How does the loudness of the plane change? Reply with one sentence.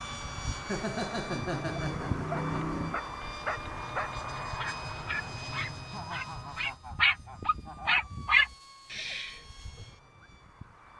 The volume of the plane goes down.